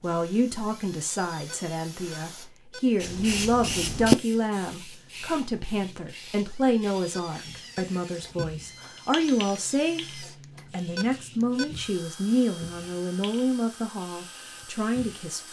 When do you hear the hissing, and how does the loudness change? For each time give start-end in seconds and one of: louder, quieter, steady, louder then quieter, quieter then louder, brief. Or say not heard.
0.0-15.3 louder then quieter.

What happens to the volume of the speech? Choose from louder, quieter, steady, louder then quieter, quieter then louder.
steady.